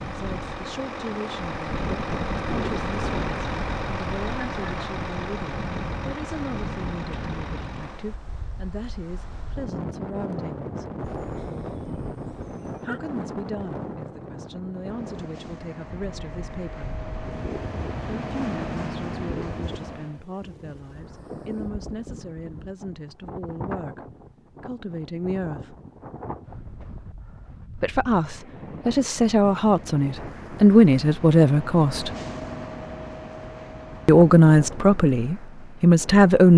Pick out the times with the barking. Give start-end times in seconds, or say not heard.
11.1-13.0.